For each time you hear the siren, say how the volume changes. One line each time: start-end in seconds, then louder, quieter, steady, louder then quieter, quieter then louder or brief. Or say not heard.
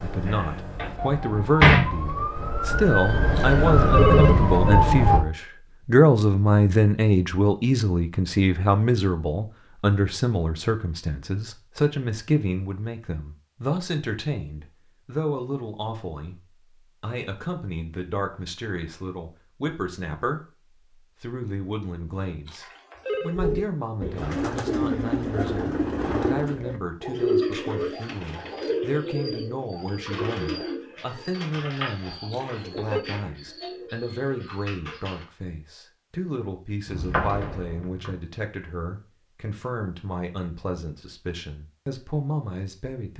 0.0-5.2 louder.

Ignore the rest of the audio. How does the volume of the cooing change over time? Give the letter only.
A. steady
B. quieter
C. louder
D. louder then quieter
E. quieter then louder
B.